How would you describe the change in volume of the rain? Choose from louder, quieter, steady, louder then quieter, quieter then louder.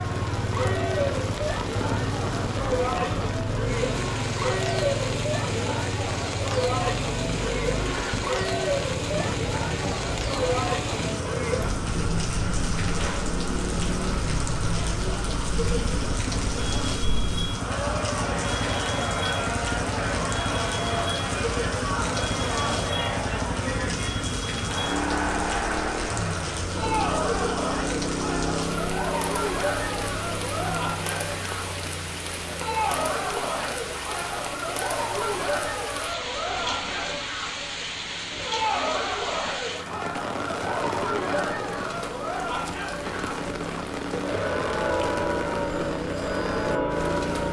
steady.